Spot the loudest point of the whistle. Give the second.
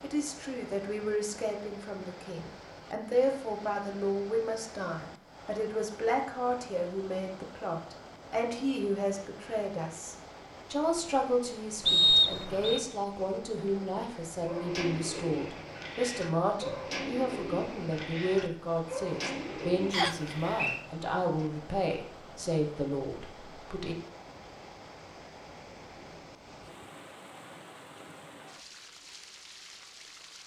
12 s.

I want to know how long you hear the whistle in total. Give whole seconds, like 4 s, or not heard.
2 s.